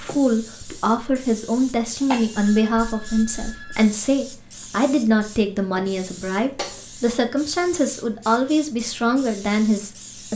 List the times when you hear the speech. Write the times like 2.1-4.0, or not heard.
0.0-10.3.